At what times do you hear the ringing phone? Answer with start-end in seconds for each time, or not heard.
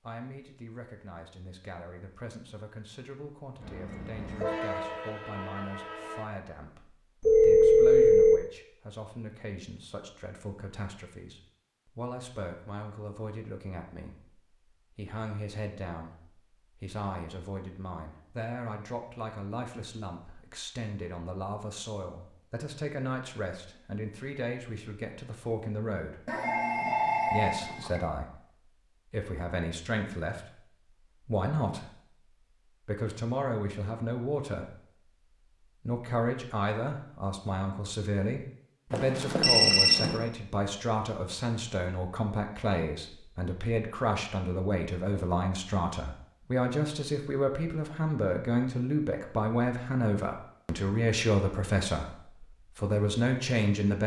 7.2-8.4, 26.2-28.0, 38.9-40.2.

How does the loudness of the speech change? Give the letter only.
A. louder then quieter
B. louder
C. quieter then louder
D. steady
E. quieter
B.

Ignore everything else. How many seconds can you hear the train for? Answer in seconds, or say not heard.
3 s.